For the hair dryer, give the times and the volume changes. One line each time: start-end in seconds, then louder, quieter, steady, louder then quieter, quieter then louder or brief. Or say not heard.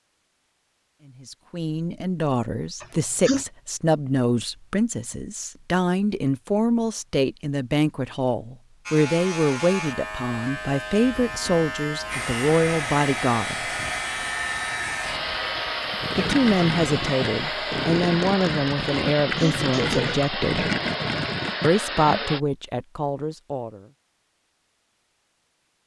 12.1-22.4 steady.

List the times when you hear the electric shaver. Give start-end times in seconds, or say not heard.
8.8-17.9.